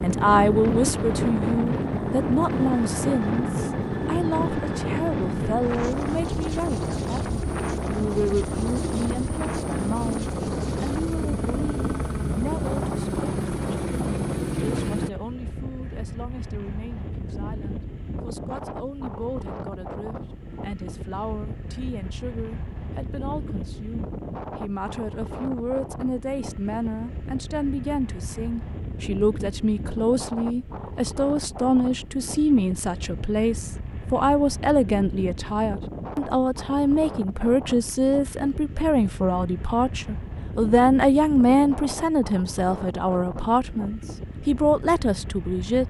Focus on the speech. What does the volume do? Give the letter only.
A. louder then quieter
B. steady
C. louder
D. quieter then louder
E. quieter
D.